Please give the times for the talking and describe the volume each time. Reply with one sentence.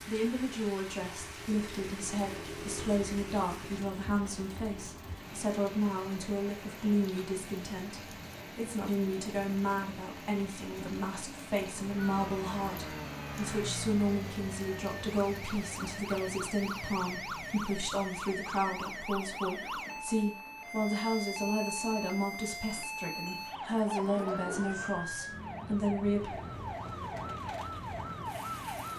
The talking can be heard from 0.1 to 26.3 s, at a steady volume.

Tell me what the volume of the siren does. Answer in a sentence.
The volume of the siren stays about the same.